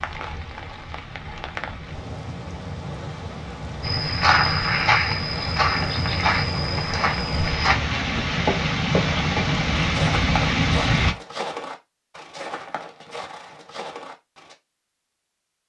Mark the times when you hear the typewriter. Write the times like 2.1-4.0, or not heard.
not heard.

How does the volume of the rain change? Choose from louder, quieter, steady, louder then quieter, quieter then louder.
louder.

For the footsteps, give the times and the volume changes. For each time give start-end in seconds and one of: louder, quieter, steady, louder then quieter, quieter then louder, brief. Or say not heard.
3.8-14.6 quieter.